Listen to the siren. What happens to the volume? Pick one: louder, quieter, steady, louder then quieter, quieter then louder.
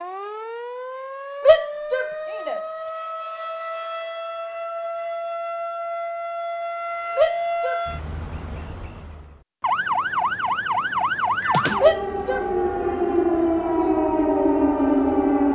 louder.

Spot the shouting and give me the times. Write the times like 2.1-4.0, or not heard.
1.4-2.6, 7.2-7.8, 11.8-12.4.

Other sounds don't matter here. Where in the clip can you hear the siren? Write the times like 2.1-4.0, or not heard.
0.0-15.5.